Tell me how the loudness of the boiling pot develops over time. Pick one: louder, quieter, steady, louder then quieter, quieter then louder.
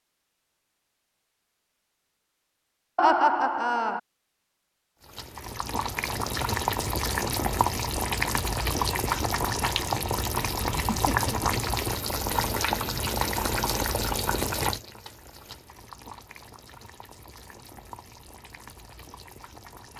quieter.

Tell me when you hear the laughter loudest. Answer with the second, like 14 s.
3 s.